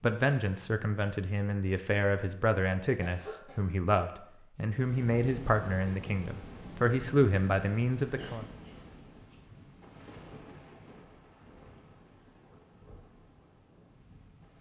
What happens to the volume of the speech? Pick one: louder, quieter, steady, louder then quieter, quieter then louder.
louder.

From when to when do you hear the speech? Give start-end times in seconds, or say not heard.
0.0-8.4.